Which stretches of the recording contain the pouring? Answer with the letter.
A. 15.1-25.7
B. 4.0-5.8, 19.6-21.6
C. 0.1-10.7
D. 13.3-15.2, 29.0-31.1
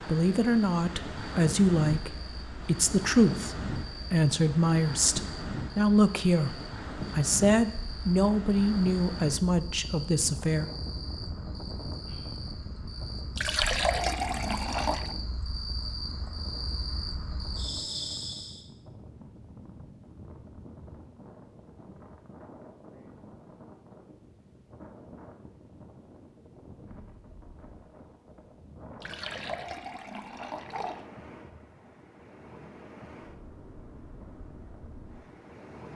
D.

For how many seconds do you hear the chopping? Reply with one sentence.
The chopping can't be heard in this clip.